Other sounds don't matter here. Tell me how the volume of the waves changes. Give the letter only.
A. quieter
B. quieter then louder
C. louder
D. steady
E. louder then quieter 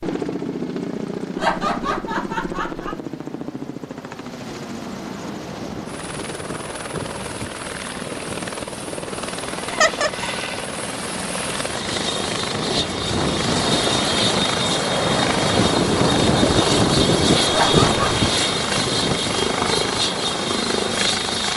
E.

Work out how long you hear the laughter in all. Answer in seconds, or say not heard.
3 s.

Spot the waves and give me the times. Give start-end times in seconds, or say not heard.
4.8-21.5.